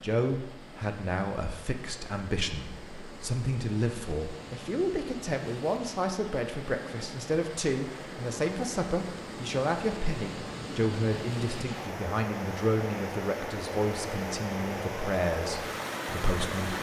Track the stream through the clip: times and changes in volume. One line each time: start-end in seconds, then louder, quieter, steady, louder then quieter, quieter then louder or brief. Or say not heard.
0.0-16.7 louder.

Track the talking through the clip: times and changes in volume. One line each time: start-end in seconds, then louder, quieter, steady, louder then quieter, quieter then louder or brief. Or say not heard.
0.0-16.7 steady.